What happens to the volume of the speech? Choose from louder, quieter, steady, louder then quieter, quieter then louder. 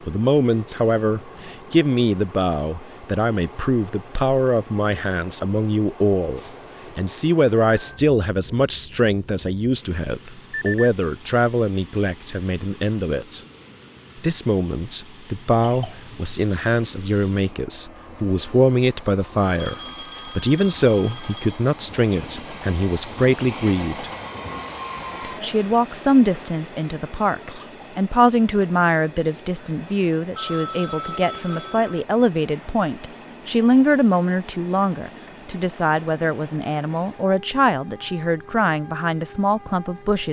steady.